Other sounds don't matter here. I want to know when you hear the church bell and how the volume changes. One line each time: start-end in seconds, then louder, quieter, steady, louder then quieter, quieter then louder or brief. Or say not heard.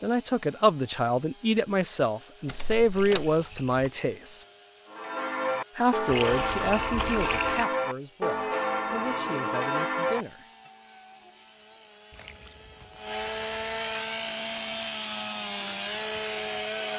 4.8-10.2 steady.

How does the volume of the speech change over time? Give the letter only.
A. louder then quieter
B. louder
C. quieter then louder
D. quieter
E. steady
D.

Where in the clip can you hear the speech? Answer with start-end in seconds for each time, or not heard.
0.0-4.5, 5.8-10.4.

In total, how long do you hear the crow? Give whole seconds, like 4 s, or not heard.
not heard.